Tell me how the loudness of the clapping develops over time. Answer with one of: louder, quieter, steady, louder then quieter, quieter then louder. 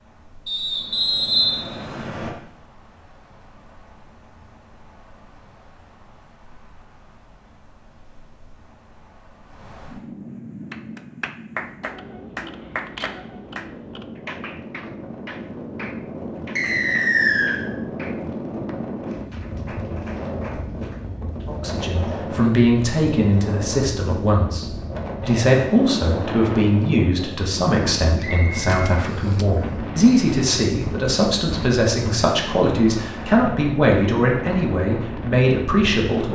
quieter.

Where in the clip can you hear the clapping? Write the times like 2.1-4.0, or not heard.
10.7-21.5.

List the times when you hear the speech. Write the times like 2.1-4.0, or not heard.
21.4-36.3.